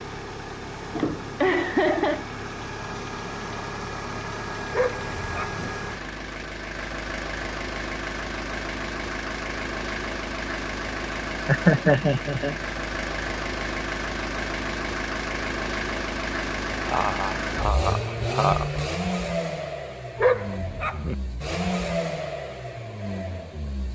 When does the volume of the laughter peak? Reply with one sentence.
The loudest moment of the laughter is at 12 seconds.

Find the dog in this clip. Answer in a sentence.
The dog can be heard from 4.7 to 5.7 s and from 20.1 to 21.1 s.